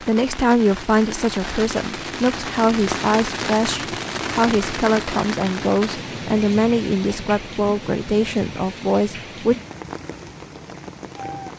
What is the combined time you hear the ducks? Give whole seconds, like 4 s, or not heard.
not heard.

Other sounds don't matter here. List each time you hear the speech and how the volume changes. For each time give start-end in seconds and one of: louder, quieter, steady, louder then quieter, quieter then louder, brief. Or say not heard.
0.0-9.6 steady.